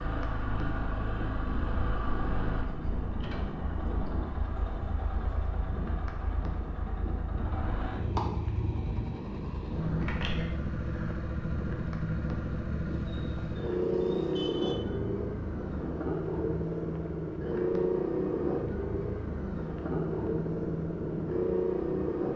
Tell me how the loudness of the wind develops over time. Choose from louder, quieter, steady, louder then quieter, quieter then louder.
steady.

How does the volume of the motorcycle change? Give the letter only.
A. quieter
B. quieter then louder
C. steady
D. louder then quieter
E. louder
E.